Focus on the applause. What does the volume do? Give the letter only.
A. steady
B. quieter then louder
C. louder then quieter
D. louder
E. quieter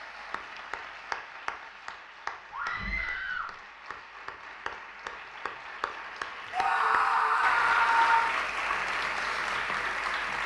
B.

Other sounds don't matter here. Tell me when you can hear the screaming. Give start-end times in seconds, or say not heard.
2.5-3.5, 6.5-8.3.